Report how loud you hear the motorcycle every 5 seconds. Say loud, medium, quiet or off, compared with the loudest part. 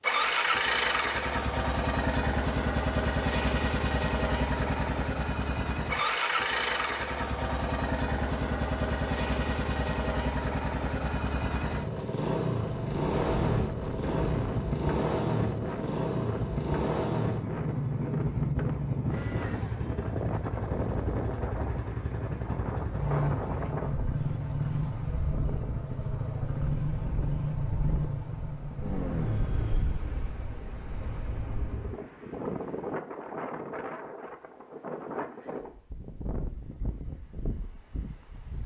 loud, loud, loud, loud, medium, medium, quiet, off.